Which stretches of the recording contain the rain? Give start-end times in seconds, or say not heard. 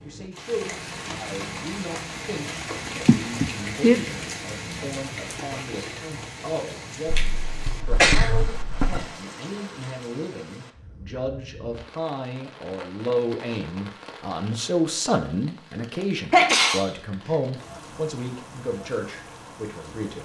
0.0-20.2.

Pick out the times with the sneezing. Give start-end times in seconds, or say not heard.
3.0-4.0, 7.2-9.0, 16.3-16.9.